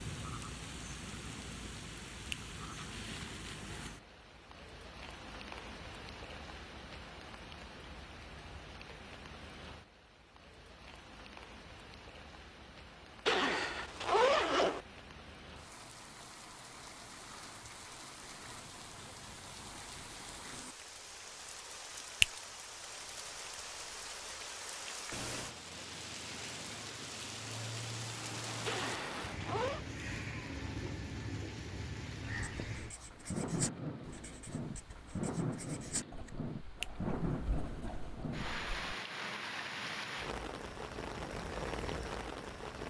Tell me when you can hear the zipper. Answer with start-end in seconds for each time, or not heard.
13.2-14.8, 28.6-29.9.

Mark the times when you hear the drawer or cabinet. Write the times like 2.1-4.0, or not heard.
not heard.